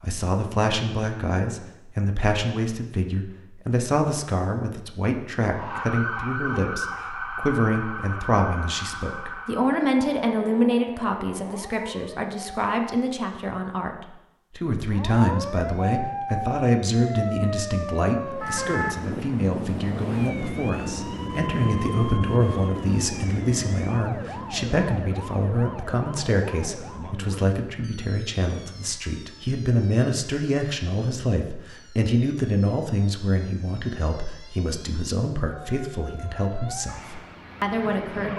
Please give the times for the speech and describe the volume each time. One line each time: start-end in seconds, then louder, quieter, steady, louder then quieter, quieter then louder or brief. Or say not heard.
0.0-38.3 steady.